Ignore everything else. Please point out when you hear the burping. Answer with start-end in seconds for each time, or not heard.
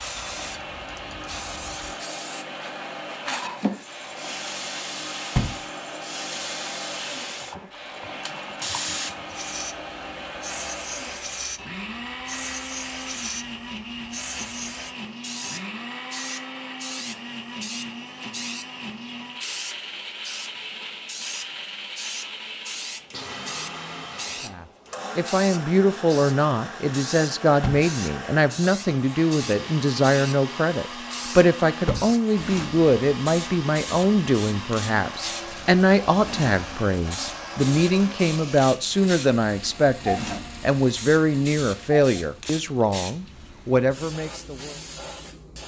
not heard.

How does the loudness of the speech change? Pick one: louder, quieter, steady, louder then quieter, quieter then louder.
steady.